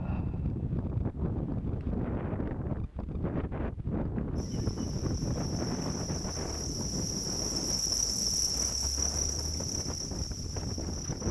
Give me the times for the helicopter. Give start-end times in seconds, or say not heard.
not heard.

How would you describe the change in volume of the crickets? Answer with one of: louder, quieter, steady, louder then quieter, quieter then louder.
louder then quieter.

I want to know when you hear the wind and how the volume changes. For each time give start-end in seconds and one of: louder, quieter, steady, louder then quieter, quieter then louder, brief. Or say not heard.
0.0-11.2 quieter.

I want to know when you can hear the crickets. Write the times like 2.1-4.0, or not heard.
4.3-11.2.